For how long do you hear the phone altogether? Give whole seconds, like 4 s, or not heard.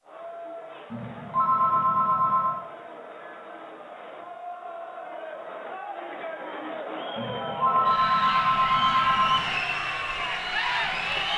4 s.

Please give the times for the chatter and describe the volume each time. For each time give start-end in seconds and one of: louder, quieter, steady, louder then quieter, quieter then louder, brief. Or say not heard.
0.0-11.3 louder.